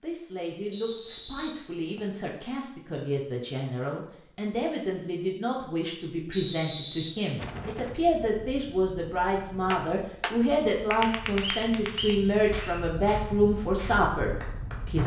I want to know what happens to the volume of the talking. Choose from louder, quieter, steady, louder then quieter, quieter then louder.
louder.